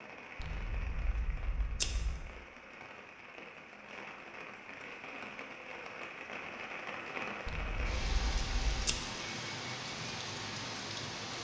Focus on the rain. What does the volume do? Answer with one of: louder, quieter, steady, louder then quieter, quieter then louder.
louder.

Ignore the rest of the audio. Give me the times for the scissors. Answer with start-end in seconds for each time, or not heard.
0.4-2.3, 7.5-8.9.